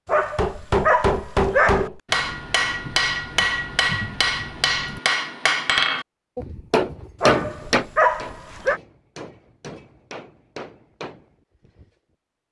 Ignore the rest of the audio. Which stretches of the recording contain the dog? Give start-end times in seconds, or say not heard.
0.1-1.9, 7.2-8.8.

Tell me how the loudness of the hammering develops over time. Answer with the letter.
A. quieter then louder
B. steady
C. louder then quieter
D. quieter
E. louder
D.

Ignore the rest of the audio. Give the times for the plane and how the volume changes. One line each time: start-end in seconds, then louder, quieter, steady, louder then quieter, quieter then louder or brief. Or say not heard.
not heard.